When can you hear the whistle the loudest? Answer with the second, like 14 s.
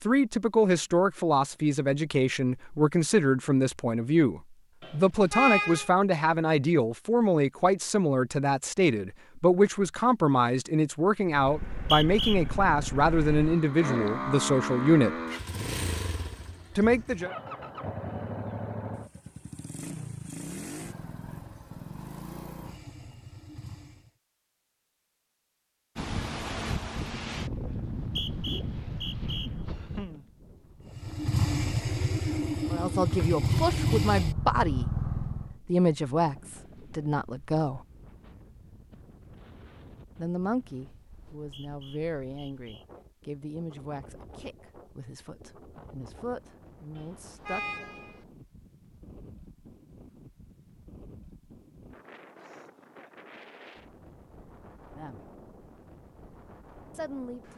12 s.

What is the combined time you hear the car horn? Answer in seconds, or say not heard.
2 s.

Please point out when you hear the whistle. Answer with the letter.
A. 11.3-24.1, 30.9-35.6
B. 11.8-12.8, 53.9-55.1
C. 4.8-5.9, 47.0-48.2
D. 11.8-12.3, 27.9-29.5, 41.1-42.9
D.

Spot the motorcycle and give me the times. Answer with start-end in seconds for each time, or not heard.
11.3-24.1, 30.9-35.6.